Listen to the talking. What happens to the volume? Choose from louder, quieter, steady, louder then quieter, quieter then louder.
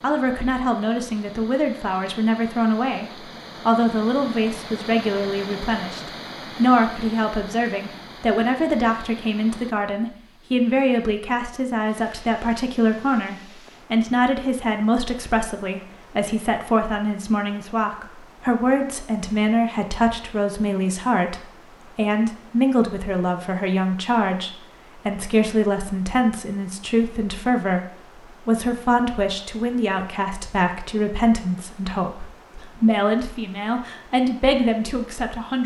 steady.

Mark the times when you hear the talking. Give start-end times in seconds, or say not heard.
0.0-35.6.